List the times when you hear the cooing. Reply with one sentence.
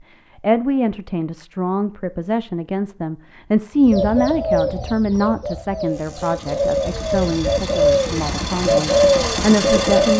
You can hear the cooing from 3.8 to 10.1 s.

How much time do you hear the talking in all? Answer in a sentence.
The talking can be heard for 10 seconds in total.